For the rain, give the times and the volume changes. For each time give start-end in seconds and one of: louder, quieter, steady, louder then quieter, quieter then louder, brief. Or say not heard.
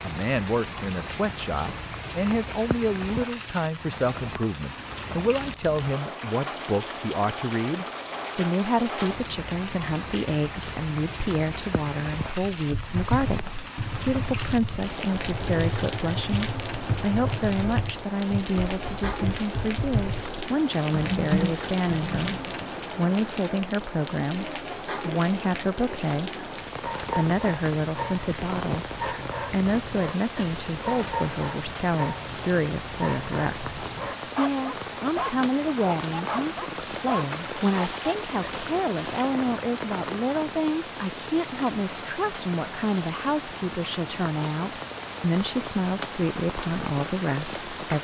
0.0-47.9 steady.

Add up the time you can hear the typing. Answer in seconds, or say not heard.
10 s.